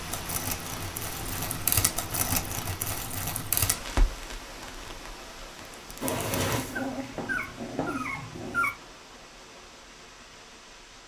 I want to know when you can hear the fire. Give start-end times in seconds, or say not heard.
0.0-6.9.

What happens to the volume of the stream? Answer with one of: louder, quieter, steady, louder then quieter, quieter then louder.
quieter.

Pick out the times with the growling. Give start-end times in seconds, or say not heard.
6.0-8.8.